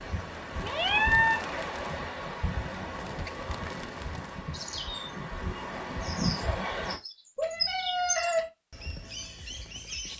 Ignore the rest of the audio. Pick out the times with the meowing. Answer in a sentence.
The meowing can be heard from 0.6 to 1.4 s and from 7.3 to 8.5 s.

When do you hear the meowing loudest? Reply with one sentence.
The volume of the meowing peaks at 1 second.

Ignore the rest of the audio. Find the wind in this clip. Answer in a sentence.
The wind can be heard from 0.0 to 7.0 s.